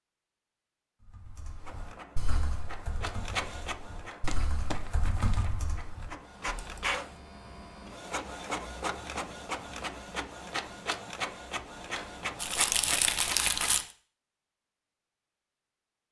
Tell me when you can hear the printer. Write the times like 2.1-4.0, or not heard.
1.6-13.8.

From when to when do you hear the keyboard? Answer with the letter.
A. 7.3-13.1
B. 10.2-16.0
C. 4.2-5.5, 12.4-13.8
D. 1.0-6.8
D.